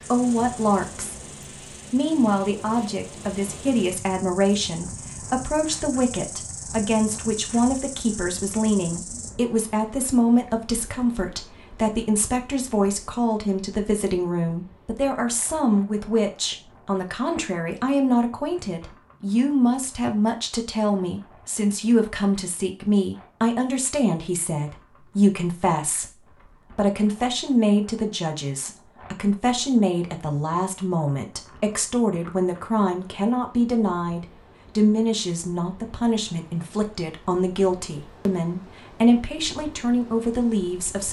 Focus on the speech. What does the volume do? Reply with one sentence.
The volume of the speech stays about the same.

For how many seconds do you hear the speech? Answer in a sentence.
You can hear the speech for 41 seconds altogether.